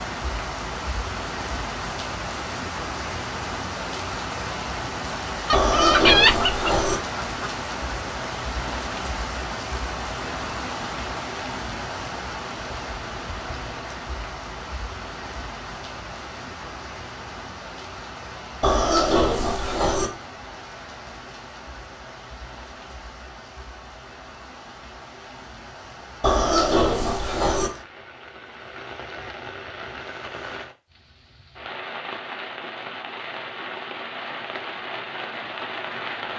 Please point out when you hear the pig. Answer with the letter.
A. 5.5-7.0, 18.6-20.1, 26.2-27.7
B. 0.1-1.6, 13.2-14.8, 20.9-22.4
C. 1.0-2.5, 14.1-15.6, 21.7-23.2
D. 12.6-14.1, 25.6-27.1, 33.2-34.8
A.